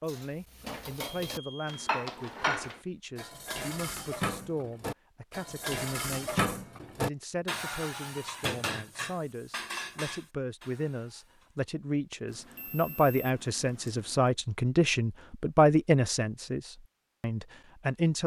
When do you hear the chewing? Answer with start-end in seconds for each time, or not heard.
not heard.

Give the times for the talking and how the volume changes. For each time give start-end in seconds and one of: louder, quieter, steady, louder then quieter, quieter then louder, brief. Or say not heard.
0.0-18.2 louder.